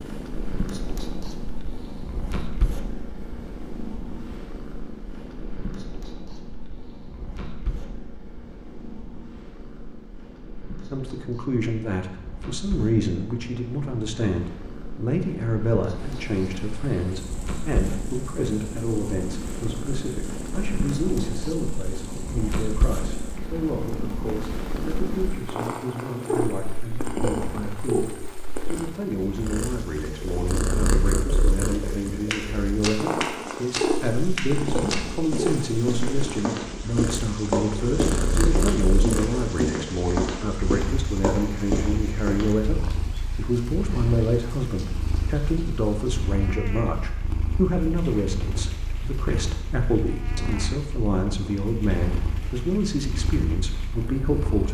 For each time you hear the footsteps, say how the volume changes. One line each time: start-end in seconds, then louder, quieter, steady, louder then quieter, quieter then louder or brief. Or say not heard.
32.3-42.5 steady.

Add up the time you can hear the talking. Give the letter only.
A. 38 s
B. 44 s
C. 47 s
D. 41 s
B.